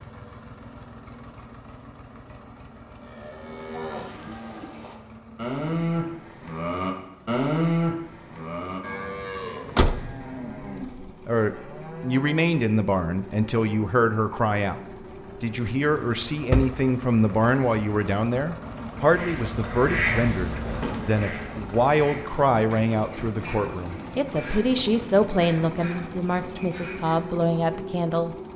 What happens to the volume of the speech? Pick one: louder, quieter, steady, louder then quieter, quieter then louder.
steady.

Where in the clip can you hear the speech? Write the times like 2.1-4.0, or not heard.
11.2-14.8, 15.4-28.4.